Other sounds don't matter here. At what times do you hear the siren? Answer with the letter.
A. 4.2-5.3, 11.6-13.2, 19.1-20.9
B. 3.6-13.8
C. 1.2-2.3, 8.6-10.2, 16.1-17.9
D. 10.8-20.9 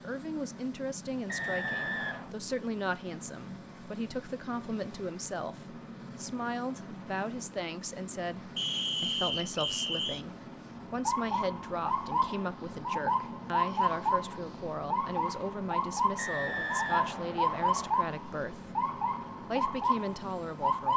D.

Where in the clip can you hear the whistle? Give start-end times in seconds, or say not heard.
1.2-2.3, 8.6-10.2, 16.1-17.9.